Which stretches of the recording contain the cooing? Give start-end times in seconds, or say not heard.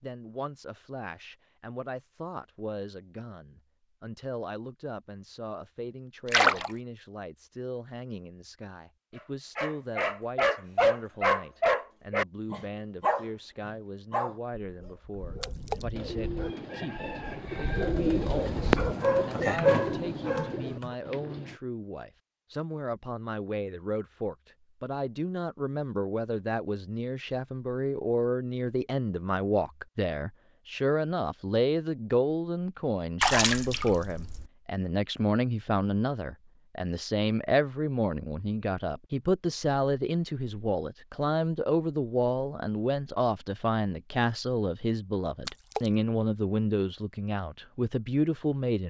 15.9-21.6.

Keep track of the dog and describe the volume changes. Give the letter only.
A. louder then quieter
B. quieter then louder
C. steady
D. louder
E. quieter
B.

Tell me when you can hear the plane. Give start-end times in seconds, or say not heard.
not heard.